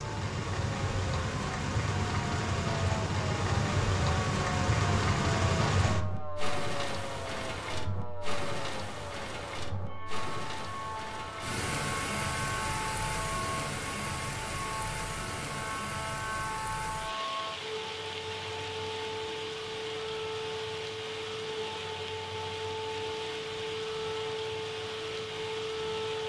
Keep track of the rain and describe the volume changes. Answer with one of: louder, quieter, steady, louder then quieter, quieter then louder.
quieter.